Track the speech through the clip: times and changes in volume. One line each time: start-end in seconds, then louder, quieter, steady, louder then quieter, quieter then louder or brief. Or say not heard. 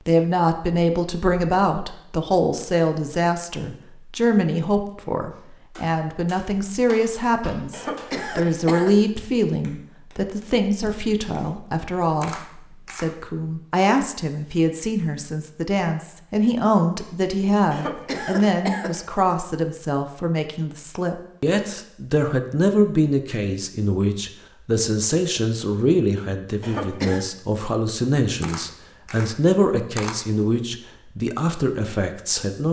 0.1-32.6 steady.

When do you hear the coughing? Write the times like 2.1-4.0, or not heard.
7.7-8.9, 17.7-19.1, 26.6-27.2.